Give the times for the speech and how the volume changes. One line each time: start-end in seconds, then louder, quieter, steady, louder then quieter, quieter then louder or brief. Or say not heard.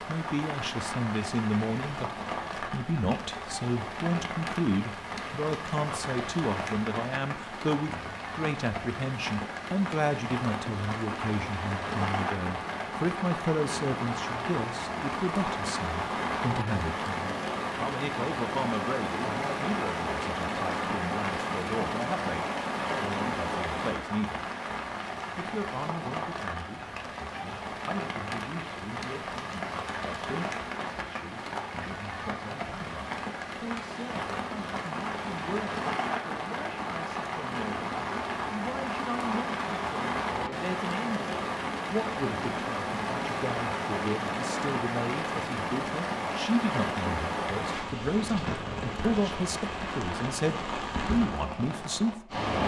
0.0-52.4 quieter then louder.